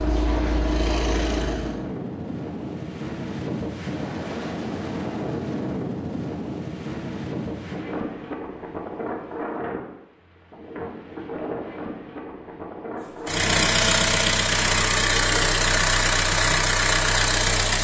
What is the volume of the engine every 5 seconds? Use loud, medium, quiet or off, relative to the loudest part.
medium, off, loud, loud.